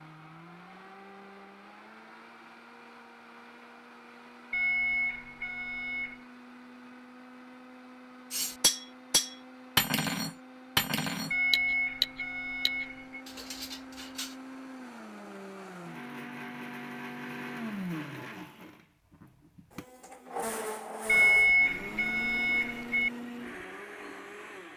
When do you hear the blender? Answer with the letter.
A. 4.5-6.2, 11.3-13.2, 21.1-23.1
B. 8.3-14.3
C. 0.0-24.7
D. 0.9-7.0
C.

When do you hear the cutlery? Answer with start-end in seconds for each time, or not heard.
8.3-14.3.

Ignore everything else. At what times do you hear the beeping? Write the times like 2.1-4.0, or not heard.
4.5-6.2, 11.3-13.2, 21.1-23.1.